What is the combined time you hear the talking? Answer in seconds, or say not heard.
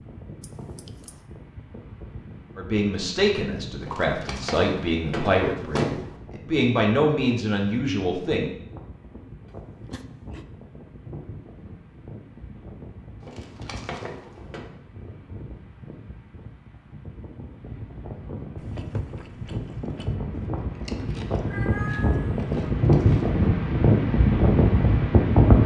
6 s.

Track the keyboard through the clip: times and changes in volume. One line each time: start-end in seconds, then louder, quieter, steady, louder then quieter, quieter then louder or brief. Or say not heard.
not heard.